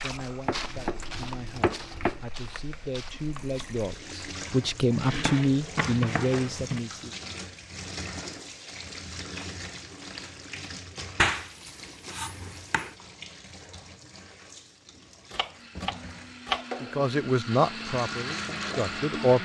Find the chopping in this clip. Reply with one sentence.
The chopping can be heard from 0.5 to 2.2 s, from 5.0 to 6.8 s, from 11.2 to 12.9 s and from 15.3 to 16.6 s.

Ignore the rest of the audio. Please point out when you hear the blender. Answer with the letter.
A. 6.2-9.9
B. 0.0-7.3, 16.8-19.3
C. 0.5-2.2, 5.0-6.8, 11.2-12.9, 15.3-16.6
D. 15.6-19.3
D.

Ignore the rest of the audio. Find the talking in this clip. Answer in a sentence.
The talking can be heard from 0.0 to 7.3 s and from 16.8 to 19.3 s.